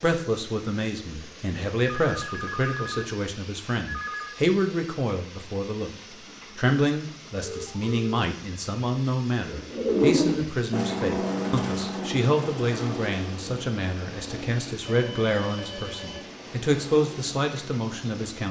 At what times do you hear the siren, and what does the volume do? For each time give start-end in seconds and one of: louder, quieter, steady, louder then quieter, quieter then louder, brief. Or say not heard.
not heard.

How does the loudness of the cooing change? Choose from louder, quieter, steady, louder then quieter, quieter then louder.
quieter.